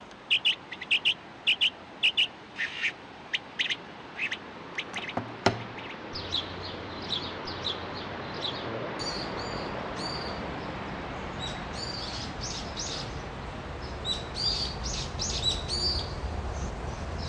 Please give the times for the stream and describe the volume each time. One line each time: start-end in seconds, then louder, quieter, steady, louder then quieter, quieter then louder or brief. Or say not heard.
0.0-17.2 louder then quieter.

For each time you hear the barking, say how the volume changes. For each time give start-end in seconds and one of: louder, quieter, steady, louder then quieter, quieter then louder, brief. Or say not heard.
not heard.